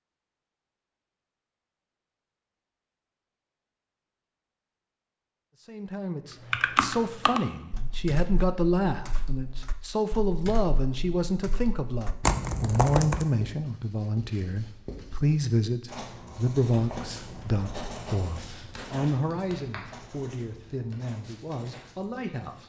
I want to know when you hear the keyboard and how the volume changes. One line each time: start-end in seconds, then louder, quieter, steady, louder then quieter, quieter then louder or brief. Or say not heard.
6.5-13.3 quieter then louder.